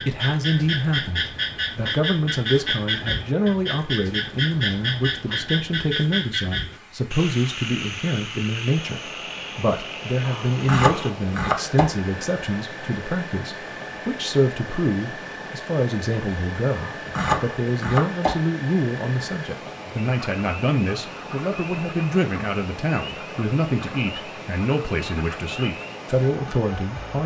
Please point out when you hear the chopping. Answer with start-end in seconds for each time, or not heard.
10.2-11.9, 16.7-18.4.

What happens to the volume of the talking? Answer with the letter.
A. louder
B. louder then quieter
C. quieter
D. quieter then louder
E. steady
E.